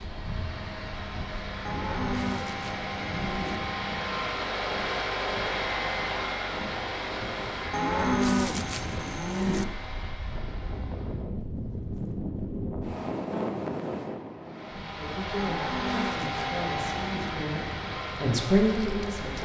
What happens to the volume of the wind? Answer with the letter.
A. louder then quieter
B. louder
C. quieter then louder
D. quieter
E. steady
A.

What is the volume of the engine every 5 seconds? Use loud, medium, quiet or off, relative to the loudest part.
loud, loud, quiet, loud.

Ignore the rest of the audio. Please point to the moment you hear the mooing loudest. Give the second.
8 s.